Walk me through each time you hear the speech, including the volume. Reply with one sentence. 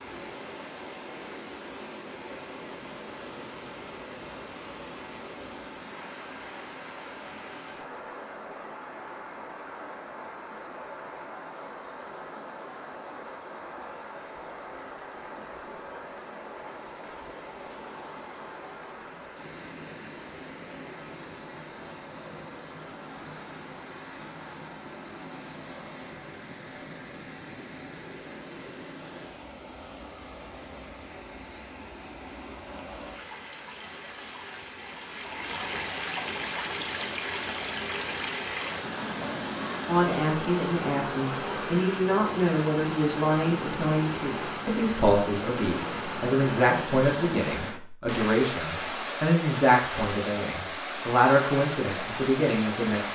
You can hear the speech from 39.9 to 53.0 s, at a steady volume.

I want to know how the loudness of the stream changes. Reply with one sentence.
The loudness of the stream goes up.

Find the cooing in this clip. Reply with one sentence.
The cooing can't be heard in this clip.